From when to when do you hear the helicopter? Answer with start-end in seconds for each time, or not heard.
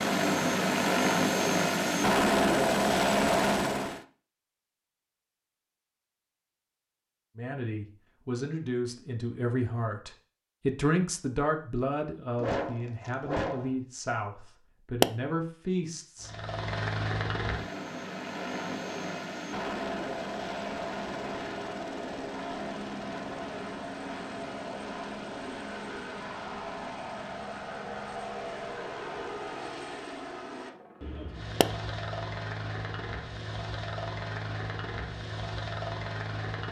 0.0-4.0, 16.2-36.6.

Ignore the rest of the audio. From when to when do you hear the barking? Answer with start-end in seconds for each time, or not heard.
12.3-13.7.